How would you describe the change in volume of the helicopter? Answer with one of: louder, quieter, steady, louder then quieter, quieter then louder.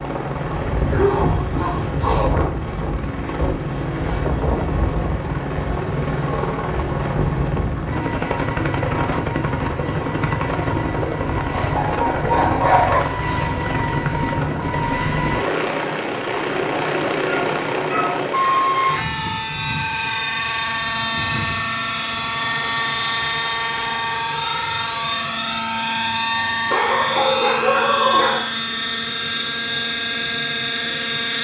steady.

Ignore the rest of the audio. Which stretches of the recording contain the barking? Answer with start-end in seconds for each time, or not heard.
0.9-2.3, 10.9-13.0, 16.7-18.8, 26.7-28.4.